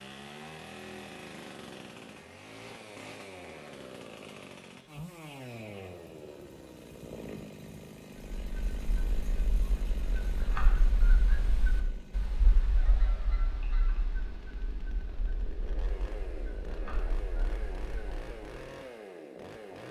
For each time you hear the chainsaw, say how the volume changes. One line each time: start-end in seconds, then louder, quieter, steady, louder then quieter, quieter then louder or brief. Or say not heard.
0.0-19.8 quieter then louder.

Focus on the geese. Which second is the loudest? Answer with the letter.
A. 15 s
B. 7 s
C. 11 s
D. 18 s
C.